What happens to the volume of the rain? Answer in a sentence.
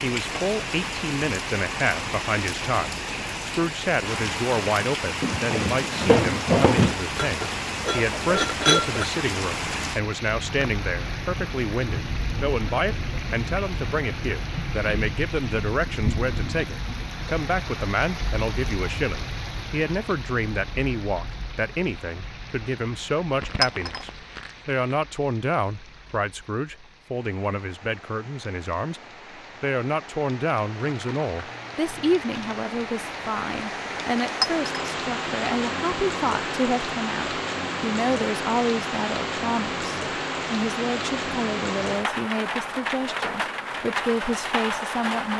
The loudness of the rain goes down, then up.